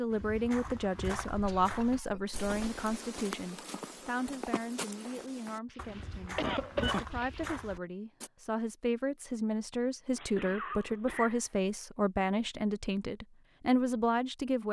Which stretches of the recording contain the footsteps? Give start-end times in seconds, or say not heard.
0.1-8.3.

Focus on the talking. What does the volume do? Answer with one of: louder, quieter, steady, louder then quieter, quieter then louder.
quieter then louder.